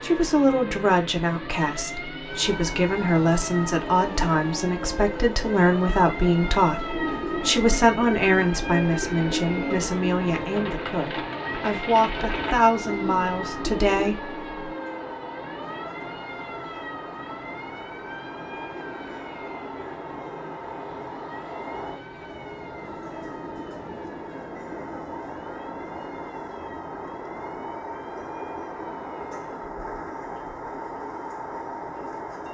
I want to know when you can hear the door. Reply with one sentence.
You can't hear the door here.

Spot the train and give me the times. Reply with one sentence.
The train can be heard from 2.2 to 32.4 s.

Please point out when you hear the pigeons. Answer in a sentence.
You can hear the pigeons from 6.8 to 14.2 s.